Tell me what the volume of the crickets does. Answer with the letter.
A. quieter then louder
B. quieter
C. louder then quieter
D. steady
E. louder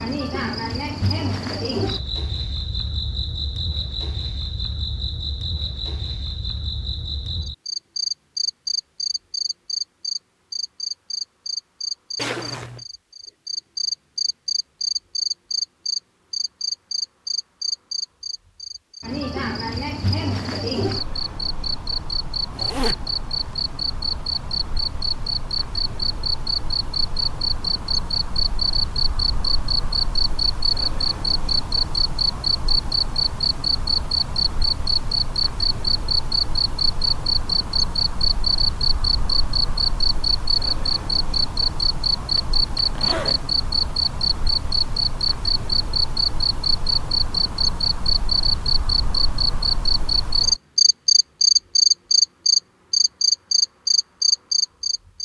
E.